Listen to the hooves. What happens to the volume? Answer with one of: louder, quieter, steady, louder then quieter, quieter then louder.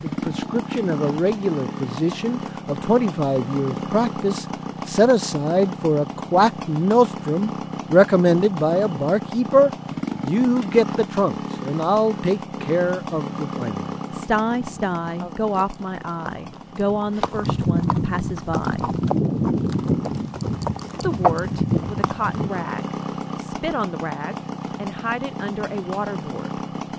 louder.